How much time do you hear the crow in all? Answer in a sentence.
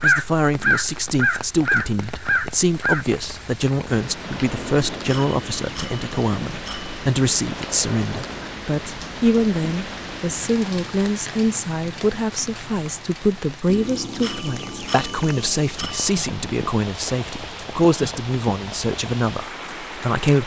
You can hear the crow for 3 seconds altogether.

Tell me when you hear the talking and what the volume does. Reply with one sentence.
The talking can be heard from 0.0 to 20.4 s, at a steady volume.